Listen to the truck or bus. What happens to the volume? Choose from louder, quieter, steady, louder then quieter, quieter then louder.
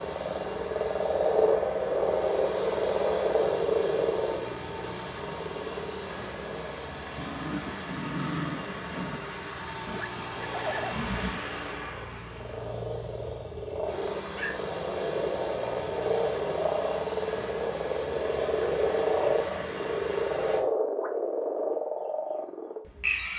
steady.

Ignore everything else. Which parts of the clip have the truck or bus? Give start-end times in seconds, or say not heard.
0.0-20.6.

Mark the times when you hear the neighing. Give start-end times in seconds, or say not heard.
9.8-11.4.